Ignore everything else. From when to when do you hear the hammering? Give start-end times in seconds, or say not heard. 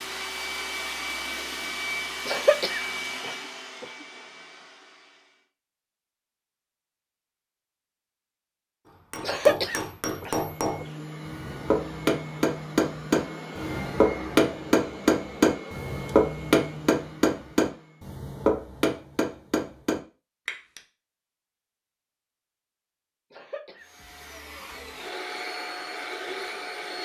9.1-20.8.